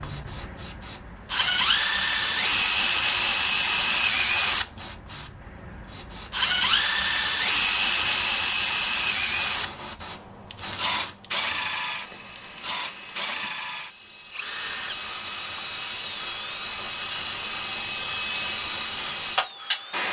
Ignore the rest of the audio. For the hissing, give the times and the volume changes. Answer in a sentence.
The hissing can be heard from 0.0 to 20.0 s, getting louder.